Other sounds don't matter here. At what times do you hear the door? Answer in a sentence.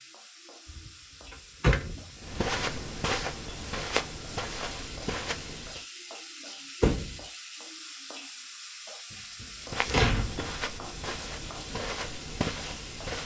You can hear the door from 0.7 to 2.0 s, from 6.8 to 7.2 s and from 9.1 to 10.6 s.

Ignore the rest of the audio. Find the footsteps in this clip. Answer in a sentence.
You can hear the footsteps from 2.2 to 5.8 s and from 9.6 to 13.2 s.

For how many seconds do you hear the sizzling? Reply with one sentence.
You can hear the sizzling for 13 seconds altogether.